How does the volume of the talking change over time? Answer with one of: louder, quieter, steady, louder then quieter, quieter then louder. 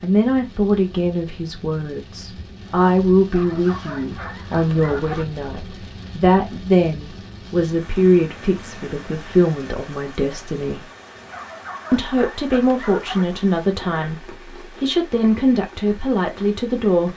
steady.